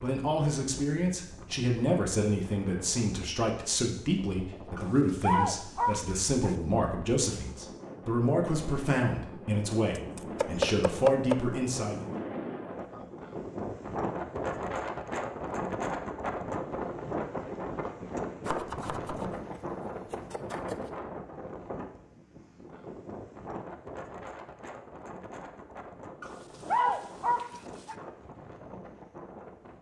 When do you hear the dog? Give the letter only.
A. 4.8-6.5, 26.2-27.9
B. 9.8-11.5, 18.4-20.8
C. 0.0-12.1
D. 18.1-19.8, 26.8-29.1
A.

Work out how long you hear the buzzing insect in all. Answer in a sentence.
The buzzing insect can't be heard in this clip.